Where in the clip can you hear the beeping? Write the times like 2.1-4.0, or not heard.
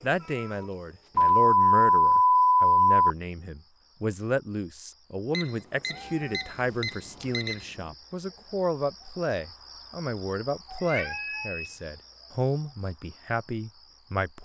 1.1-3.1, 5.3-7.5, 11.1-11.8.